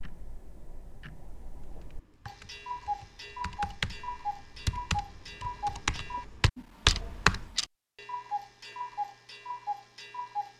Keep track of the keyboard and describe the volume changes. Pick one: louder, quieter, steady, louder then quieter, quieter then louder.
louder.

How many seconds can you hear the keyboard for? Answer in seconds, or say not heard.
6 s.